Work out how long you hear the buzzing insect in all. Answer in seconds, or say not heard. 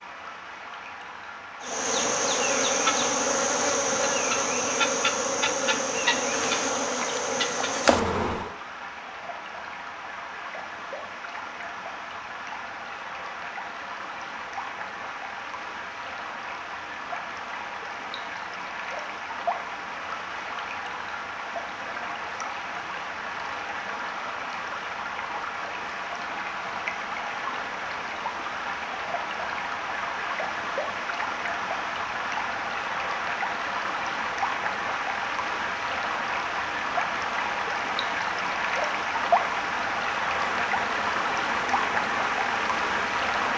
10 s.